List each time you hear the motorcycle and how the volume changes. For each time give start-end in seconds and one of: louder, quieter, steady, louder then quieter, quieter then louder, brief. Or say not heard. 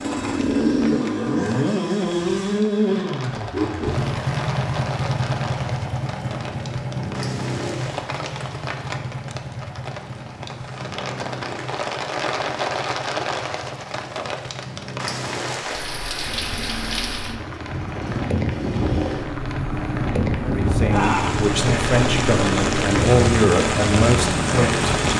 0.0-25.1 quieter then louder.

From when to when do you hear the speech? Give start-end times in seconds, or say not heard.
20.4-24.9.